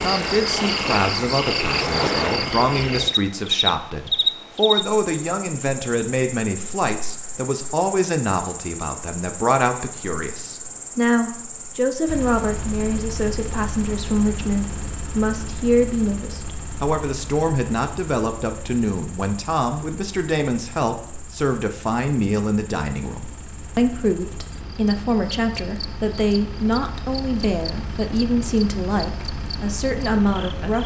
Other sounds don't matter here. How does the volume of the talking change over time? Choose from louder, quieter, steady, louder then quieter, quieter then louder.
steady.